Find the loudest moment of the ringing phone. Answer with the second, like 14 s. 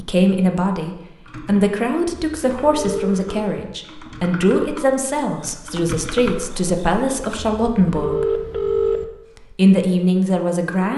9 s.